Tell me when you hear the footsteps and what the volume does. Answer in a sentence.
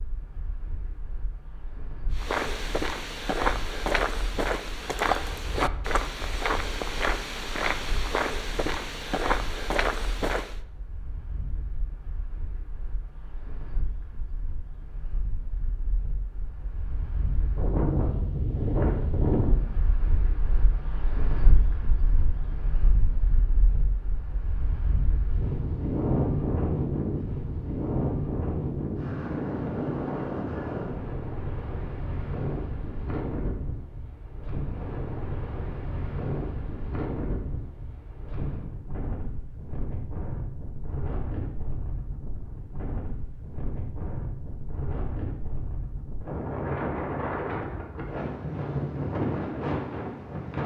The footsteps can be heard from 2.1 to 10.6 s, at a steady volume.